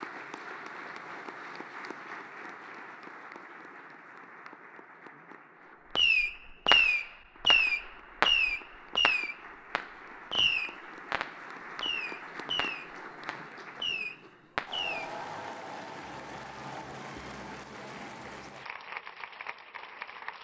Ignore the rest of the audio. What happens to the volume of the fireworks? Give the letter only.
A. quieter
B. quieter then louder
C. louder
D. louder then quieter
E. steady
A.